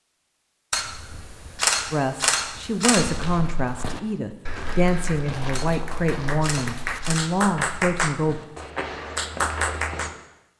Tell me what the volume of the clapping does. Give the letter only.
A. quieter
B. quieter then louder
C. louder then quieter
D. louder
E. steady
D.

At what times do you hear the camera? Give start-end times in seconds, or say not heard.
0.7-3.1, 5.5-7.4.